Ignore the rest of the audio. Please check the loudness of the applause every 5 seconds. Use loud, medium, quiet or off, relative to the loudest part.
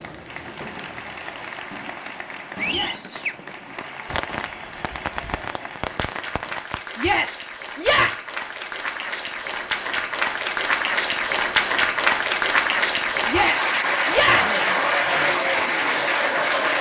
quiet, medium, loud, loud.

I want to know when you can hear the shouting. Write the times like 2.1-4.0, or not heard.
2.6-3.1, 7.0-8.1, 13.2-14.6.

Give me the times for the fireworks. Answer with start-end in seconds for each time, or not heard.
0.4-6.8.